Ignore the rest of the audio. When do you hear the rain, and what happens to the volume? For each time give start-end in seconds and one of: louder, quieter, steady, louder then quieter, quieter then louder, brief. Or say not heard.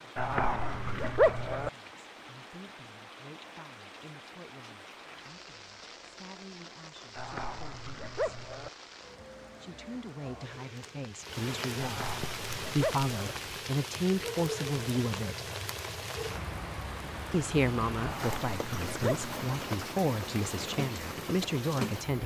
0.0-22.2 louder.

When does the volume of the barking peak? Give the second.
1 s.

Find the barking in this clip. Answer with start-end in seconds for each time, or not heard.
0.1-1.7, 7.2-8.7, 11.8-13.3, 18.0-19.6.